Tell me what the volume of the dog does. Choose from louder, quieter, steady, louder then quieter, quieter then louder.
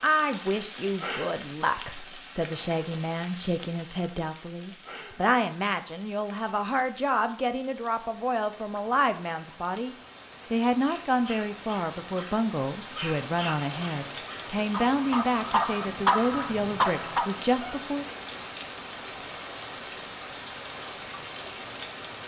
louder.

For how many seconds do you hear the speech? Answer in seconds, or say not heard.
18 s.